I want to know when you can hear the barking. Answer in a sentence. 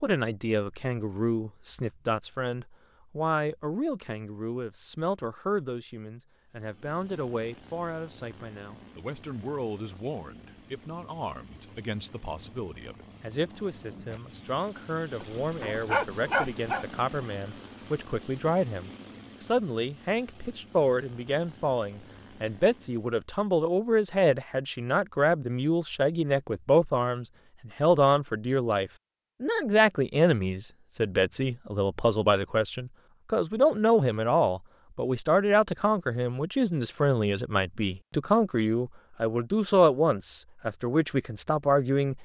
The barking can be heard from 15.2 to 16.9 s.